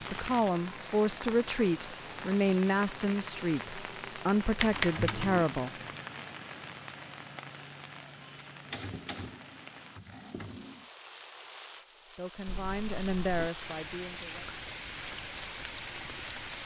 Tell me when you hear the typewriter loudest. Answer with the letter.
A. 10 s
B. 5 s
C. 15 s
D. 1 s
B.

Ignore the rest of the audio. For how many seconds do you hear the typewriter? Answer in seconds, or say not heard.
3 s.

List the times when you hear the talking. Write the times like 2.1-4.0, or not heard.
0.0-5.7, 12.2-14.4.